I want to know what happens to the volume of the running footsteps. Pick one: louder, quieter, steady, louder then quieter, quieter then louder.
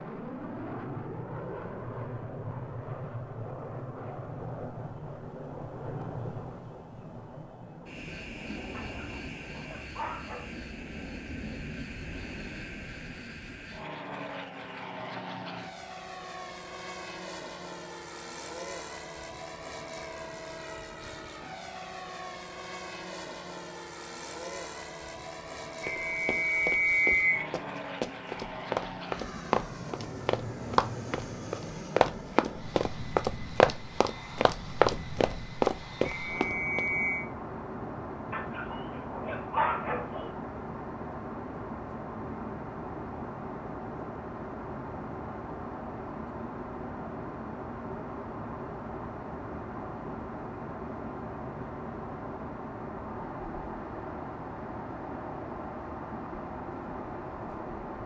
louder.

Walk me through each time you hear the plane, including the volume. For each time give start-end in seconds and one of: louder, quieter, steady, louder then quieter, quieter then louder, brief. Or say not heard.
0.0-58.0 steady.